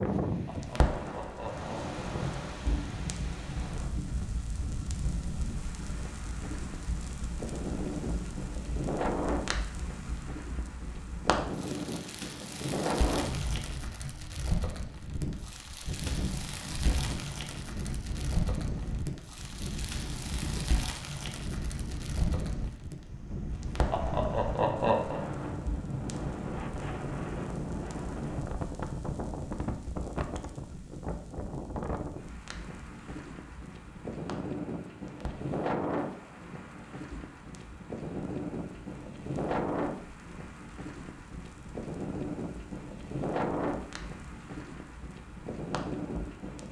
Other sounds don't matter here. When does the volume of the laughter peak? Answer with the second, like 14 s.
25 s.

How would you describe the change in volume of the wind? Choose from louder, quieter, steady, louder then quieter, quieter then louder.
steady.